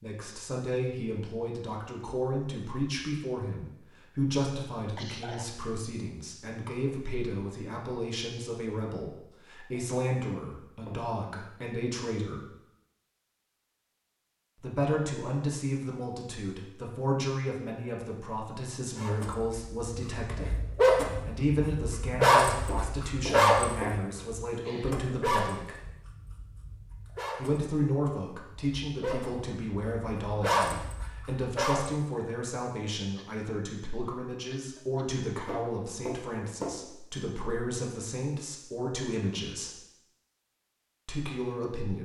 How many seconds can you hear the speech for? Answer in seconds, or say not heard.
37 s.